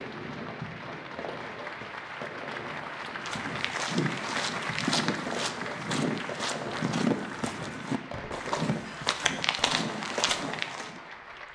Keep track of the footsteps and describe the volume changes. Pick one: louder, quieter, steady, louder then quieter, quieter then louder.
steady.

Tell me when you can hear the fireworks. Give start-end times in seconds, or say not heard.
0.0-11.4.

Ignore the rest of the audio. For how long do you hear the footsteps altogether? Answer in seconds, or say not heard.
8 s.